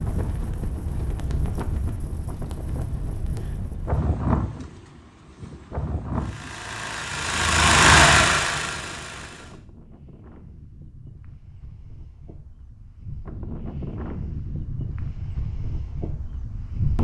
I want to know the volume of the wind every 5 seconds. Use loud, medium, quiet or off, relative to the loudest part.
loud, medium, medium, loud.